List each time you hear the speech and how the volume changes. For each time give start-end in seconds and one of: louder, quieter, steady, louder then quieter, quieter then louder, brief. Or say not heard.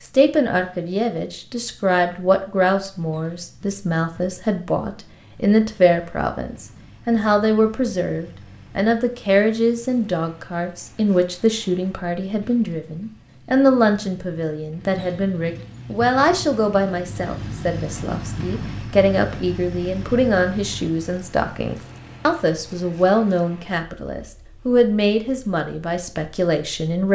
0.1-27.1 steady.